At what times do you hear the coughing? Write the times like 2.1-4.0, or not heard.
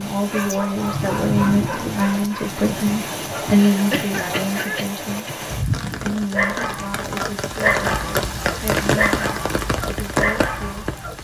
3.5-5.3.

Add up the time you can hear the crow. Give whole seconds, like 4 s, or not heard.
not heard.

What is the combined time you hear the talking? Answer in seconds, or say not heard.
11 s.